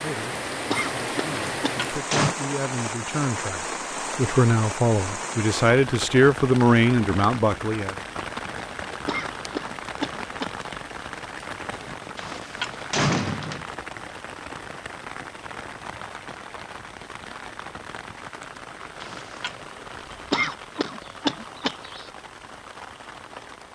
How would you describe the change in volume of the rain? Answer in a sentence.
The volume of the rain goes down.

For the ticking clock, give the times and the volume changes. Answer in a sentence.
You can't hear the ticking clock here.